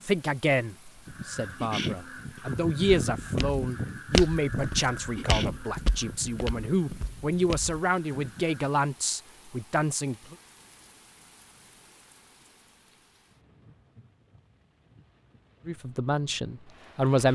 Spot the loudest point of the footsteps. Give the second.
4 s.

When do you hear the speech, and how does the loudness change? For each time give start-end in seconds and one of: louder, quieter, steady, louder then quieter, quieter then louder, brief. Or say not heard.
0.0-10.3 steady
15.7-17.3 brief.